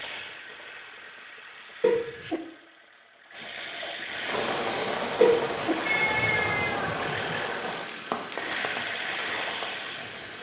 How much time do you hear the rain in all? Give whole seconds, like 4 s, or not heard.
6 s.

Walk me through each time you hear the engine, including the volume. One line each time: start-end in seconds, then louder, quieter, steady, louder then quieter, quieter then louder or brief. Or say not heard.
0.0-10.3 louder.